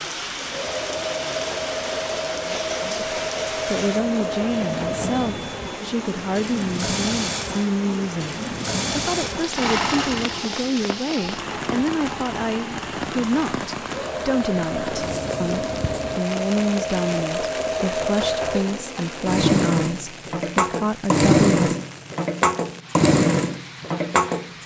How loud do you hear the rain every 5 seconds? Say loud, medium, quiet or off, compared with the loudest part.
loud, loud, loud, loud, medium.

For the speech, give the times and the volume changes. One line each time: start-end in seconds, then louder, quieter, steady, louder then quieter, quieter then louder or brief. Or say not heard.
2.8-21.8 steady.